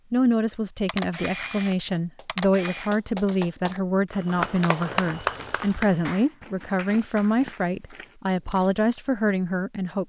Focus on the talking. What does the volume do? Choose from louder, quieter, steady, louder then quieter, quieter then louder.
steady.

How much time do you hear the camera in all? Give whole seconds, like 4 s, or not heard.
3 s.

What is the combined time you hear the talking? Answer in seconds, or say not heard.
10 s.